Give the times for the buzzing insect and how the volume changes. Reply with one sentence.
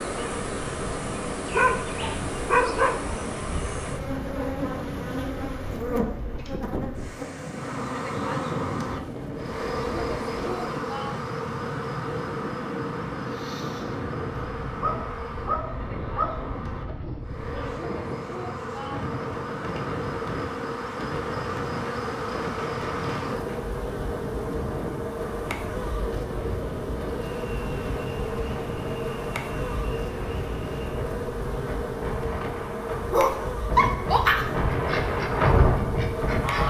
You can hear the buzzing insect from 0.0 to 36.6 s, at a steady volume.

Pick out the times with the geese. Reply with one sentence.
The geese can be heard from 34.6 to 36.6 s.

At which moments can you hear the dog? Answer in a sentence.
The dog can be heard from 1.5 to 3.0 s, from 14.8 to 17.2 s and from 33.1 to 34.5 s.